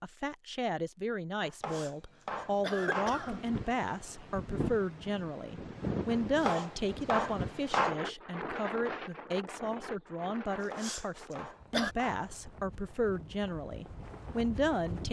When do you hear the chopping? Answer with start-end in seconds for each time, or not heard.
1.6-3.2, 6.5-8.0, 10.7-12.2.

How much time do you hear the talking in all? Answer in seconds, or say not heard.
15 s.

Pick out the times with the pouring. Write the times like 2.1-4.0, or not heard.
not heard.